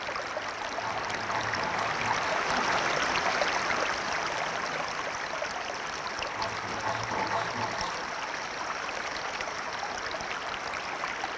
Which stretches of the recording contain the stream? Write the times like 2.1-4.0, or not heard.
0.0-11.3.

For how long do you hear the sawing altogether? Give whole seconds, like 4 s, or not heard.
4 s.